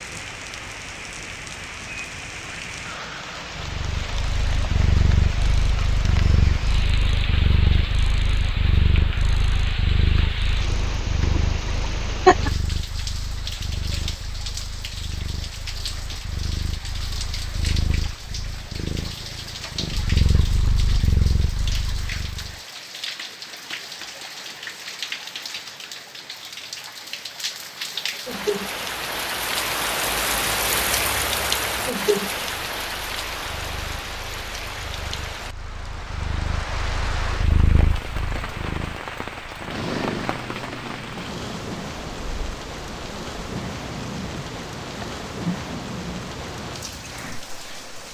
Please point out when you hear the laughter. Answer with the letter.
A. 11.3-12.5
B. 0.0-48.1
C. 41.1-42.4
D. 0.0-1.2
A.